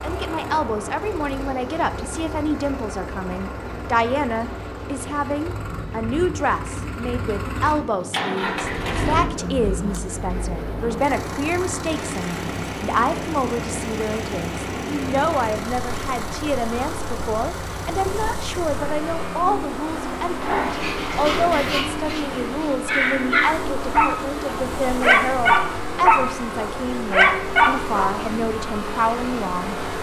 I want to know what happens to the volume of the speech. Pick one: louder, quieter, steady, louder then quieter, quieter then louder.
steady.